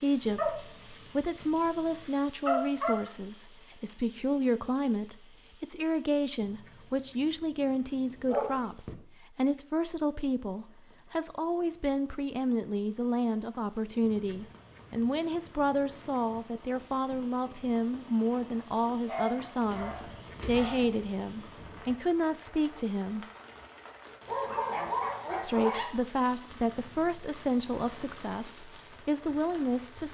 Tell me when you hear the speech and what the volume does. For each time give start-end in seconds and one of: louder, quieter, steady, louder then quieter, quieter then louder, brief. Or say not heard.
0.0-23.2 steady
25.4-30.0 quieter then louder.